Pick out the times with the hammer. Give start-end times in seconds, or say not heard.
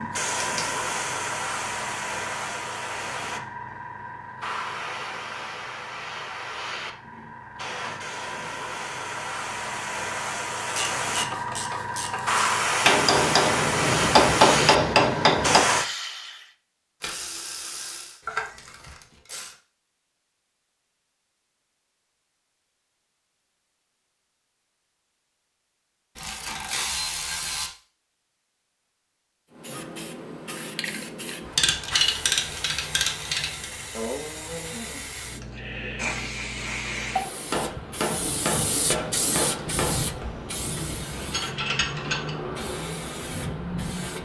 12.8-15.7, 37.5-40.2.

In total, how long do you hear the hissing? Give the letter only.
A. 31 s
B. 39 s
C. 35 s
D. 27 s
A.